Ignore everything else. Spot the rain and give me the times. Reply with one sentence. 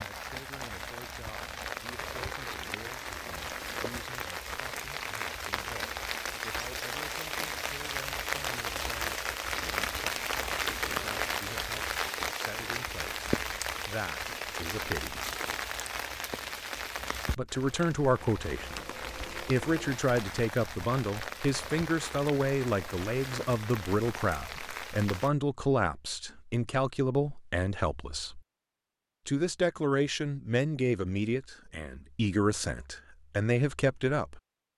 You can hear the rain from 0.0 to 25.3 s.